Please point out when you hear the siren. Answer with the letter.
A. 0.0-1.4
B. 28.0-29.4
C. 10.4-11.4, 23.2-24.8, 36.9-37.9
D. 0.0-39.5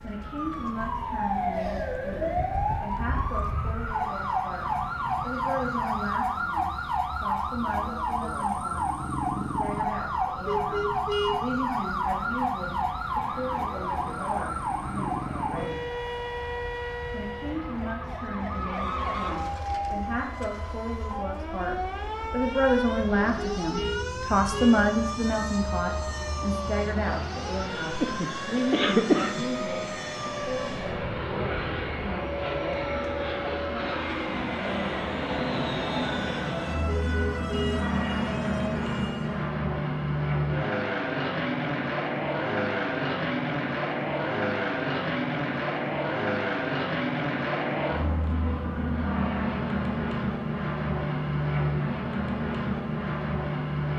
D.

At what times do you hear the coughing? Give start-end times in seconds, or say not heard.
28.0-29.4.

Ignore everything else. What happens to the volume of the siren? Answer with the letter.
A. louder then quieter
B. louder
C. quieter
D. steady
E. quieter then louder
C.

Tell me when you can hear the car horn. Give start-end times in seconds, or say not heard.
10.4-11.4, 23.2-24.8, 36.9-37.9.